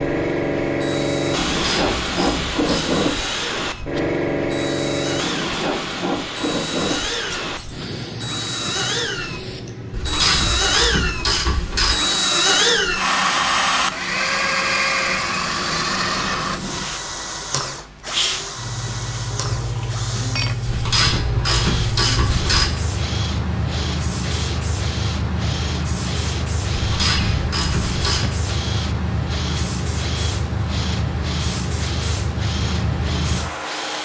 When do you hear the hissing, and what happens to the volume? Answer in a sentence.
You can hear the hissing from 0.0 to 33.9 s, getting quieter then louder.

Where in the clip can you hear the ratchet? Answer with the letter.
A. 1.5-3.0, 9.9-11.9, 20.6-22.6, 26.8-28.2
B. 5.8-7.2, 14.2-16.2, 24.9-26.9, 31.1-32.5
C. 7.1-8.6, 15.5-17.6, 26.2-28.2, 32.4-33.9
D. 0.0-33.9
A.